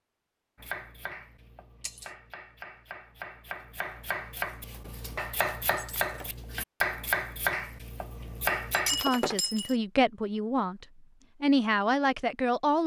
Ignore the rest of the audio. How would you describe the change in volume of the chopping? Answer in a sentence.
The loudness of the chopping goes up.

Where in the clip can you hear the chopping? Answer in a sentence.
The chopping can be heard from 0.6 to 9.1 s.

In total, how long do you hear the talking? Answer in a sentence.
You can hear the talking for 4 seconds altogether.